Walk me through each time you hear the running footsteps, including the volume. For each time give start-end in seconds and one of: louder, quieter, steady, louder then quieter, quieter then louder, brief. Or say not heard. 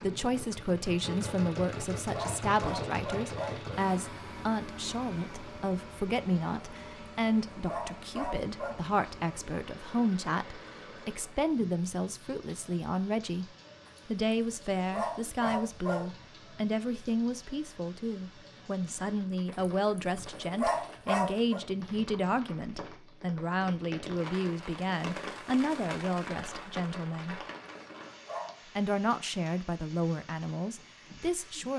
not heard.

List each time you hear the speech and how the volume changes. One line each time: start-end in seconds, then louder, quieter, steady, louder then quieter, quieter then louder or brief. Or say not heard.
0.0-13.4 steady
14.1-27.4 steady
28.8-31.7 brief.